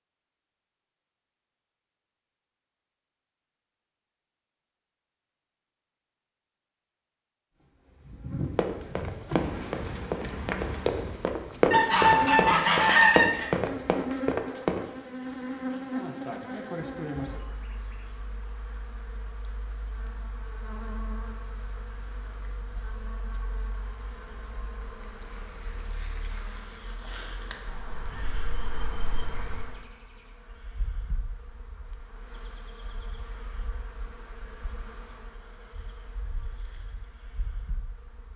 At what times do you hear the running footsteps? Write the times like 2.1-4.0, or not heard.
8.6-14.8.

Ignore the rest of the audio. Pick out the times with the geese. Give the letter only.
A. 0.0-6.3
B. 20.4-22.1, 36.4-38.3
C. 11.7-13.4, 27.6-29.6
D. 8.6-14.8
C.